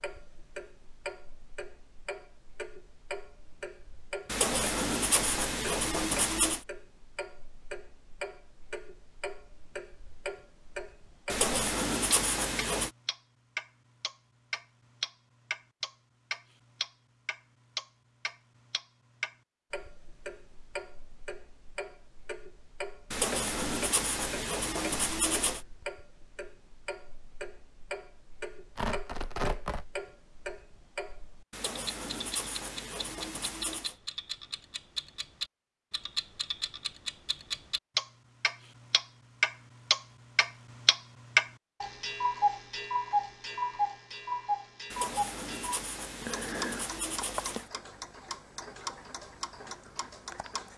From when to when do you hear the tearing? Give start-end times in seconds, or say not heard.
28.8-29.9.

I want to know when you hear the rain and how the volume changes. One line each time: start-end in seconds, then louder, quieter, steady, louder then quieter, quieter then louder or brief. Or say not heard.
not heard.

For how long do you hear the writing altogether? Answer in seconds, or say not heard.
12 s.